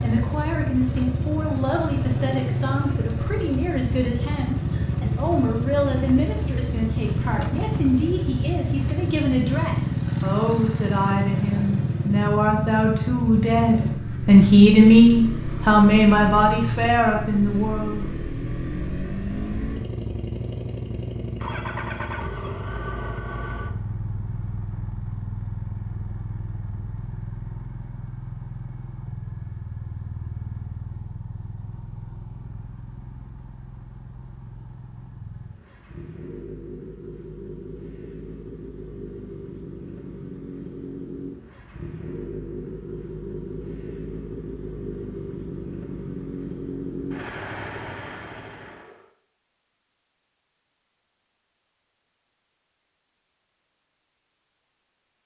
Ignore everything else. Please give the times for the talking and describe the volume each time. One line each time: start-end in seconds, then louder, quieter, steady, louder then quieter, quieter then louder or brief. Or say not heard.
0.0-18.1 louder.